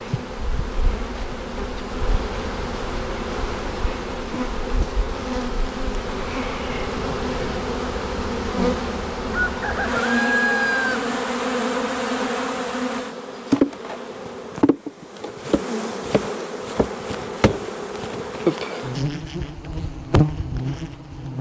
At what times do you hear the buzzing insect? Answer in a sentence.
You can hear the buzzing insect from 0.0 to 21.3 s.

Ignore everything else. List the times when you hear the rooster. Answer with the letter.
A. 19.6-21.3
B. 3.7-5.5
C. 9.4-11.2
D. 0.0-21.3
C.